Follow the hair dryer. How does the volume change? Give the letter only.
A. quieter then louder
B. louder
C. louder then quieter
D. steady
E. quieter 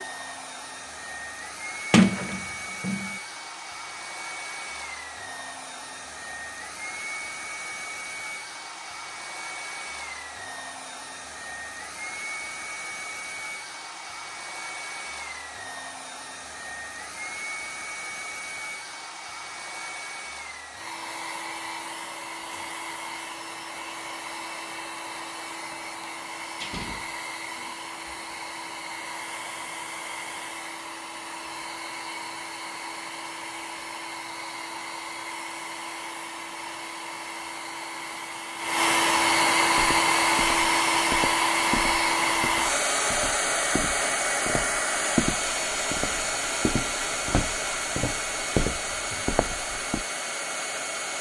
B.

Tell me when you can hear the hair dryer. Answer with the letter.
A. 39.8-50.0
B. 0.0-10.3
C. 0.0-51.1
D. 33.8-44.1
C.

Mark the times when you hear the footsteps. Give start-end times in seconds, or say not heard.
39.8-50.0.